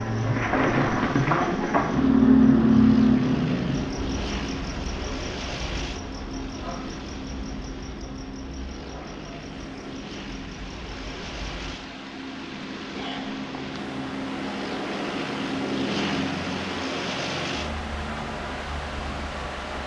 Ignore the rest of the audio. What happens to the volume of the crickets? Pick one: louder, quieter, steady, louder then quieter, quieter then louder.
quieter.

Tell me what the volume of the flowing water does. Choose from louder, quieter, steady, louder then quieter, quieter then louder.
louder.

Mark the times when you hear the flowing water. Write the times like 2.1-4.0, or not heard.
9.3-19.8.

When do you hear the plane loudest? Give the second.
16 s.